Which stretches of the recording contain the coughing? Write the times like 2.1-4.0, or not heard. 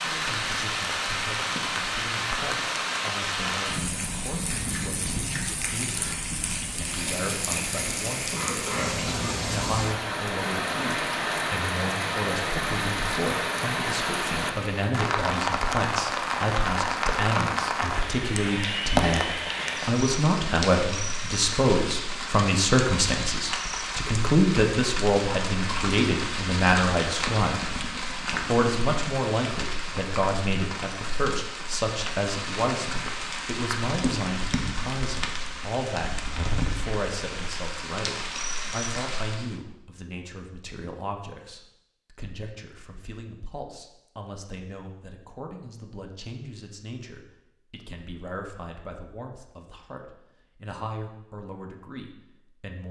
8.3-9.5.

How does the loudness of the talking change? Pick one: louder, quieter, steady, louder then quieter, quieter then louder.
louder then quieter.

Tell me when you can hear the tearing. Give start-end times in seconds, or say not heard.
not heard.